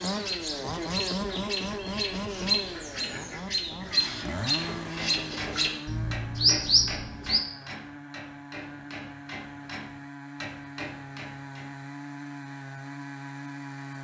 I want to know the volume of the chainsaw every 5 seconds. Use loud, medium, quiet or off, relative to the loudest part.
loud, medium, medium.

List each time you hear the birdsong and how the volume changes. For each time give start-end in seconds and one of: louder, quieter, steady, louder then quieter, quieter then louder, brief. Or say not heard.
0.0-7.4 louder.